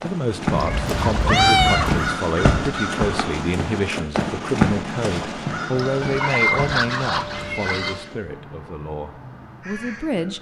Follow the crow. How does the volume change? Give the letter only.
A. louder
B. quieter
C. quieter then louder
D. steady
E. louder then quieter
B.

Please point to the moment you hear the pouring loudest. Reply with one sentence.
The loudest moment of the pouring is at 7 seconds.